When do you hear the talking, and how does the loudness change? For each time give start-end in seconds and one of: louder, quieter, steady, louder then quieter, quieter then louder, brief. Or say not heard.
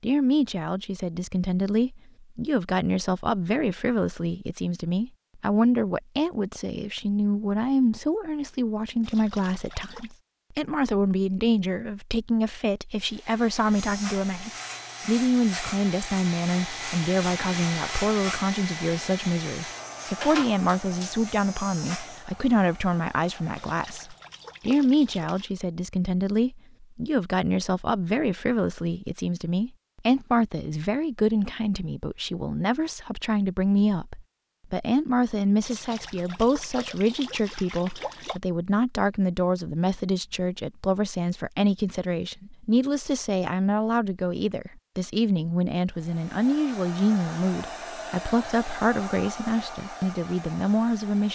0.0-51.3 steady.